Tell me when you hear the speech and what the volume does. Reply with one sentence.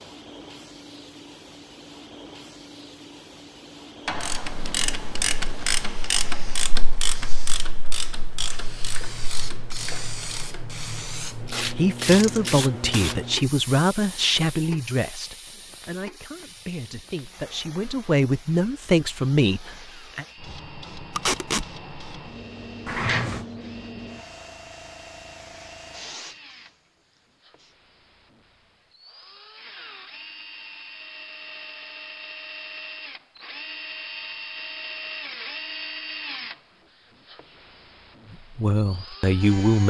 The speech can be heard from 11.8 to 20.2 s, getting quieter then louder; and briefly from 38.3 to 39.8 s.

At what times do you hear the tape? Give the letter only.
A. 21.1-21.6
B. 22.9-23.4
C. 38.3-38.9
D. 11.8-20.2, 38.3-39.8
A.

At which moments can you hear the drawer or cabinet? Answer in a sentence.
The drawer or cabinet can be heard from 22.9 to 23.4 s.